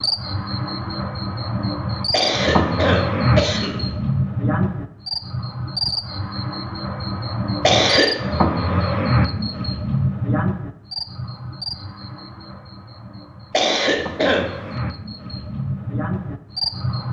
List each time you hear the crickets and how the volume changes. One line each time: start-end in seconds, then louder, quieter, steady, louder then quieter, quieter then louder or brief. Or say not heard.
0.0-17.0 quieter.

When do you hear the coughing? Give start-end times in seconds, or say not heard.
2.1-3.9, 7.6-8.2, 13.5-14.6.